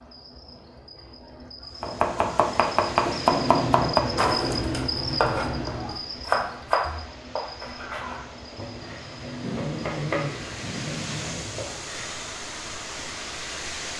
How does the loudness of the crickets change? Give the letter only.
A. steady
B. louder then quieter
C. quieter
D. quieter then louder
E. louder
B.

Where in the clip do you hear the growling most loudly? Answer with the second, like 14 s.
10 s.